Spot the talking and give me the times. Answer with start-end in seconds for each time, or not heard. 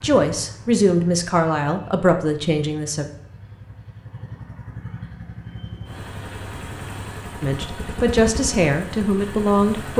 0.0-3.0, 7.4-9.9.